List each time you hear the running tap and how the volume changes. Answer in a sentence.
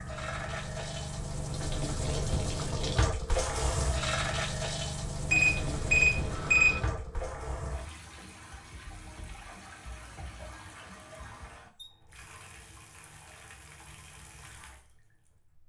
You can hear the running tap from 0.0 to 15.6 s, getting quieter.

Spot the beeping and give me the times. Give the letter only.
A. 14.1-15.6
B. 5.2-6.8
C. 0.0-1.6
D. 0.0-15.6
B.